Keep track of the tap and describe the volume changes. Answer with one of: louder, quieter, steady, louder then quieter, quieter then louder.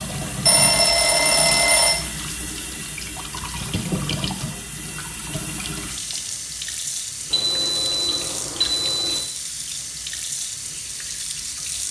steady.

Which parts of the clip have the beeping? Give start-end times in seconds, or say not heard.
0.5-2.0, 7.3-9.3.